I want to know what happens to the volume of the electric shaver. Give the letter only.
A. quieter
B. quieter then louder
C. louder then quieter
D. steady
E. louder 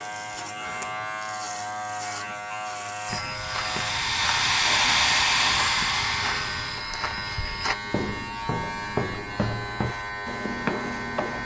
D.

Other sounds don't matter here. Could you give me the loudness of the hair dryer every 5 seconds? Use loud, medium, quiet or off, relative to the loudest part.
loud, loud, off.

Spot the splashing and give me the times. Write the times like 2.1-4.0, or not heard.
not heard.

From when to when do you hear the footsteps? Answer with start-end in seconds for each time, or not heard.
3.0-11.4.